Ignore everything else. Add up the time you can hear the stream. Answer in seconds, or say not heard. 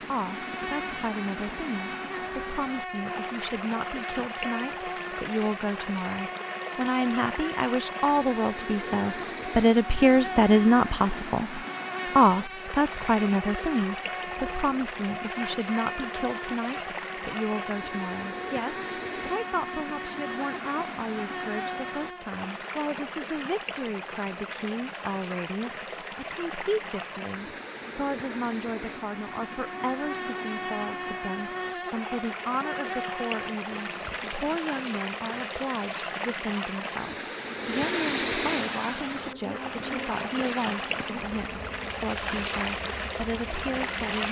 44 s.